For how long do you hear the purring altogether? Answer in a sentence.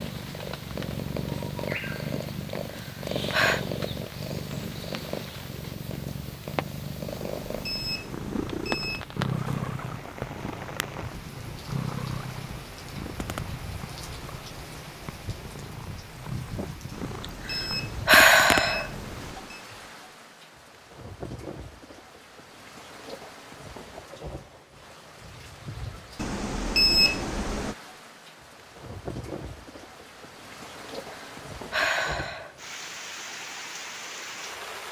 You can hear the purring for 19 seconds altogether.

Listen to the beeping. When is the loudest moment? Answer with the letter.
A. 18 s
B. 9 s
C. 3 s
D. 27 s
D.